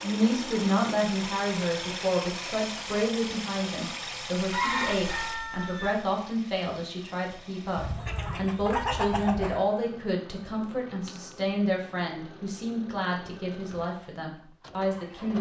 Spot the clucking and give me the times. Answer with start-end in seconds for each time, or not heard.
4.5-6.0, 7.8-9.6.